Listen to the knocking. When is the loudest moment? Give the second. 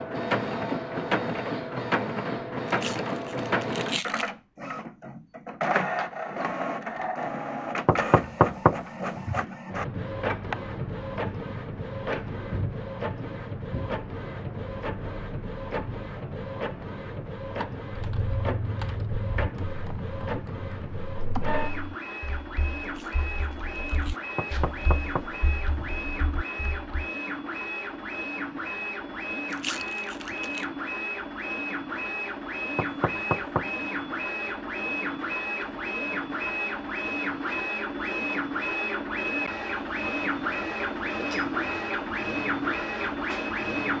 9 s.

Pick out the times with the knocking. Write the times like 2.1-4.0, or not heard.
7.8-9.4, 24.4-25.9, 32.8-33.7.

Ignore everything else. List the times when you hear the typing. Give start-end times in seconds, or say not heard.
17.9-27.1.